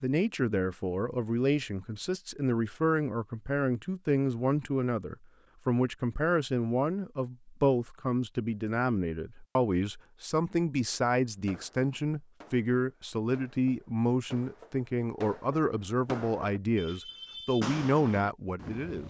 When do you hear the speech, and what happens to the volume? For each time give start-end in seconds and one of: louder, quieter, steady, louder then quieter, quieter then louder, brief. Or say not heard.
0.0-19.0 steady.